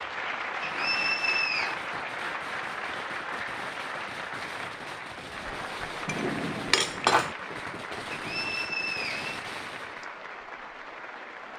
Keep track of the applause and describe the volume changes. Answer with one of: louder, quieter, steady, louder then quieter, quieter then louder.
quieter.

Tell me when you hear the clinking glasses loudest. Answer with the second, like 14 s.
7 s.